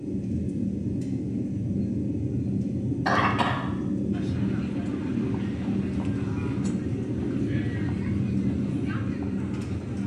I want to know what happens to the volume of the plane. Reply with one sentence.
The volume of the plane stays about the same.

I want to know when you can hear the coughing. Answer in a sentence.
The coughing can be heard from 3.0 to 3.6 s.